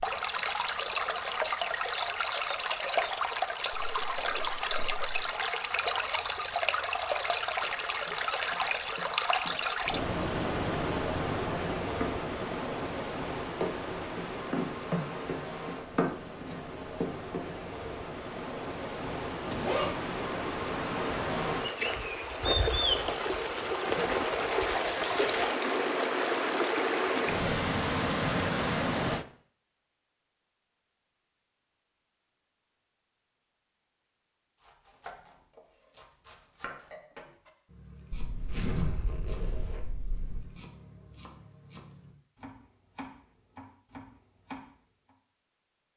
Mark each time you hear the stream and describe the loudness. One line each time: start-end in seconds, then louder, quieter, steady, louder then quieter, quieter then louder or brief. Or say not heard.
0.0-29.2 quieter then louder.